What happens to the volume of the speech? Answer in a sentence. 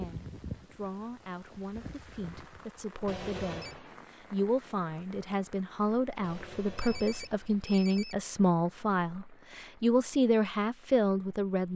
The loudness of the speech goes up.